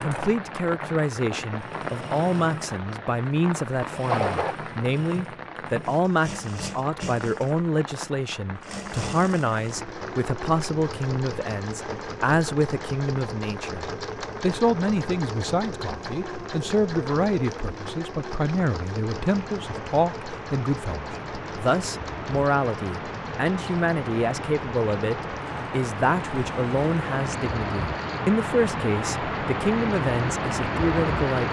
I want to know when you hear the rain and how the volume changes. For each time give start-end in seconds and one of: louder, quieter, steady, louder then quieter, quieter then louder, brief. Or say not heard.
0.0-31.4 quieter then louder.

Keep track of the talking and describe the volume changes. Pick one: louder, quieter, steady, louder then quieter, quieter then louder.
steady.